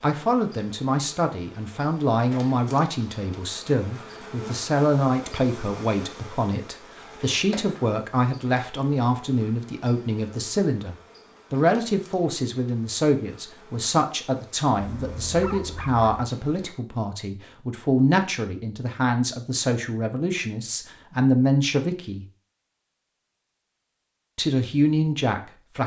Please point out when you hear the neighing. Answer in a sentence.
You can't hear the neighing here.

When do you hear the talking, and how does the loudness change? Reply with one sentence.
You can hear the talking from 0.0 to 22.2 s, at a steady volume; and briefly from 24.4 to 25.8 s.